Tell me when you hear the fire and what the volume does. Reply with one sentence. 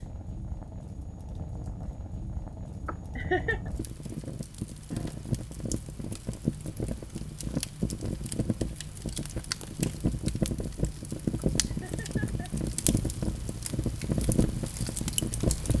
You can hear the fire from 0.0 to 15.7 s, getting louder.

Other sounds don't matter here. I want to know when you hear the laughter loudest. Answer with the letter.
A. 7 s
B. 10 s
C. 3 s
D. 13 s
C.